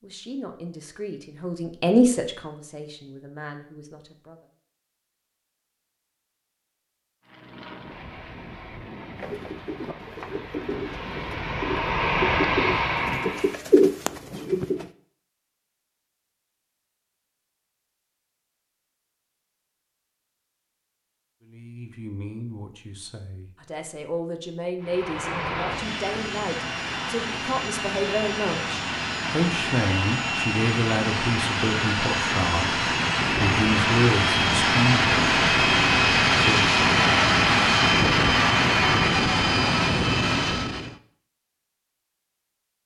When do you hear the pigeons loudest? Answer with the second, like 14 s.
14 s.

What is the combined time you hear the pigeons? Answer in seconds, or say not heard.
6 s.